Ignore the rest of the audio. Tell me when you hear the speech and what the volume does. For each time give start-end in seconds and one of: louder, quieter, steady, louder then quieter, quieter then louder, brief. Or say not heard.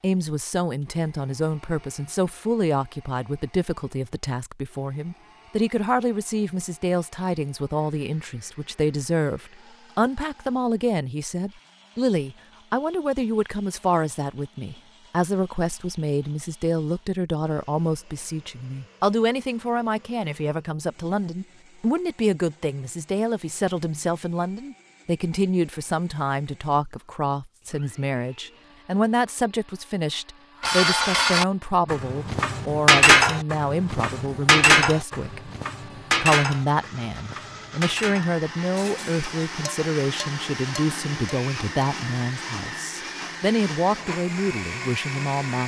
0.0-35.5 steady
36.2-45.6 steady.